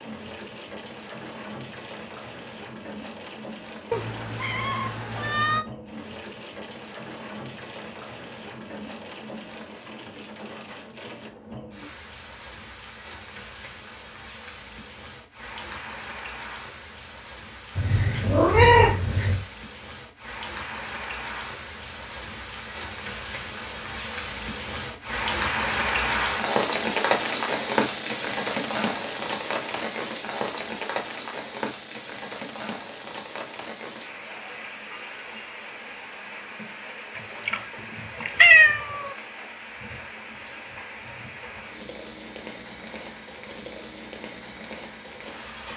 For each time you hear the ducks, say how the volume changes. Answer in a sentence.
You can't hear the ducks here.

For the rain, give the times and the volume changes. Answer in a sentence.
You can hear the rain from 0.0 to 45.7 s, getting louder then quieter.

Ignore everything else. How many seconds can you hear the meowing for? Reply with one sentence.
The meowing can be heard for 5 seconds in total.